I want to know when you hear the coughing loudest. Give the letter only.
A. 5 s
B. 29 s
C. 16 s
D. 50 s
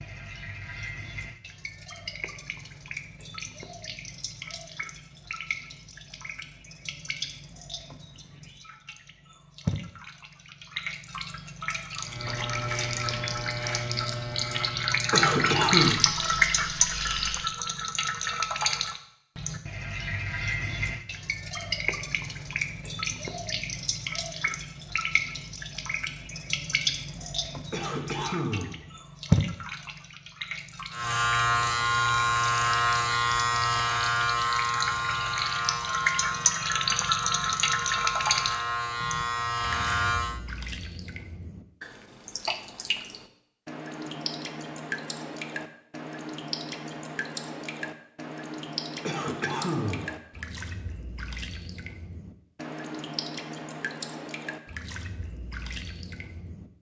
C.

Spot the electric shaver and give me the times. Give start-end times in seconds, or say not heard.
12.0-17.5, 30.9-40.4.